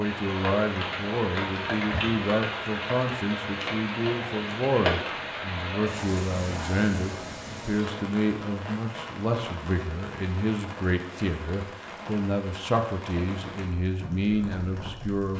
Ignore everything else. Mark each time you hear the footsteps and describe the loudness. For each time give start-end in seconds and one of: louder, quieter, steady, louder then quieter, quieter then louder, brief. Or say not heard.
not heard.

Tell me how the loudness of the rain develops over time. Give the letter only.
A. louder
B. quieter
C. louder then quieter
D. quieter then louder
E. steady
B.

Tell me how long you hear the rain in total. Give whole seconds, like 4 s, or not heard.
15 s.